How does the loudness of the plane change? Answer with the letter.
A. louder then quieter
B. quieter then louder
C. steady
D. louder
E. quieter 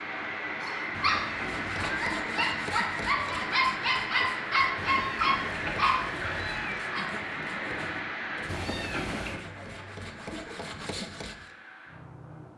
E.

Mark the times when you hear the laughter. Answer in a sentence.
You can't hear the laughter here.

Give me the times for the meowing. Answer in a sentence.
The meowing can be heard from 0.9 to 2.1 s, from 4.8 to 6.8 s and from 8.4 to 9.4 s.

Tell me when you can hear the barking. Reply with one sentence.
The barking can be heard from 0.6 to 7.0 s.